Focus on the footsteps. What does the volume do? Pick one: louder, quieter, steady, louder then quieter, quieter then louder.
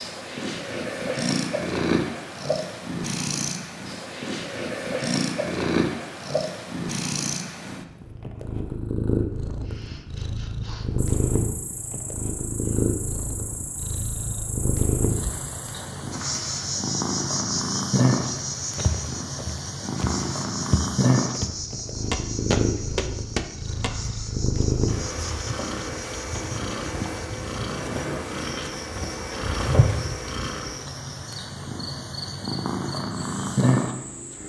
louder.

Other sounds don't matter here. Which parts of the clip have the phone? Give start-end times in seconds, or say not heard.
not heard.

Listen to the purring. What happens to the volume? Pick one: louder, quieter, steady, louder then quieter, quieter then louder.
steady.